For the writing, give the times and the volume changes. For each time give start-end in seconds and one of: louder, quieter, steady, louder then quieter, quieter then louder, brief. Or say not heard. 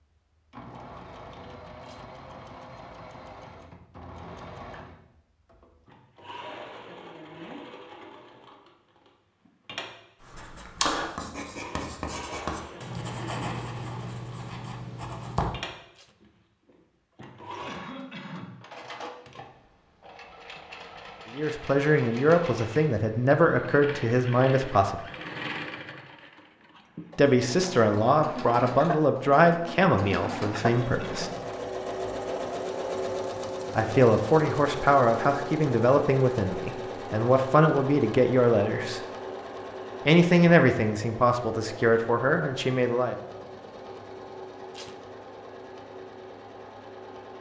10.2-15.4 quieter.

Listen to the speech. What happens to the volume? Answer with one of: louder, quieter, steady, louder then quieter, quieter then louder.
steady.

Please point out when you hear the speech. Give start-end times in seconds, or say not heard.
21.3-25.0, 27.1-31.3, 33.8-39.0, 40.0-43.1.